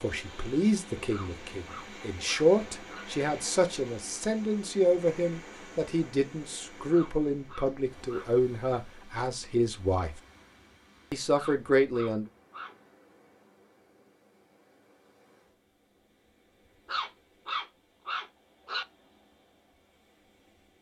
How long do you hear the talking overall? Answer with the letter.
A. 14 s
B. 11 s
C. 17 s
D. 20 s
B.